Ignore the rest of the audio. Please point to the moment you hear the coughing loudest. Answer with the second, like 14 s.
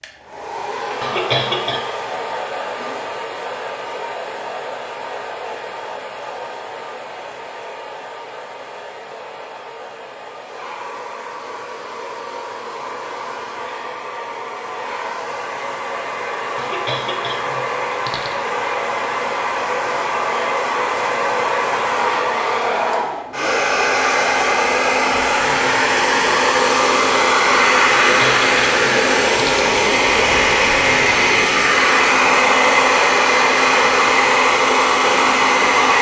1 s.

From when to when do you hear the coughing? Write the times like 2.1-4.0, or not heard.
1.0-1.9, 16.6-18.4, 27.9-29.7.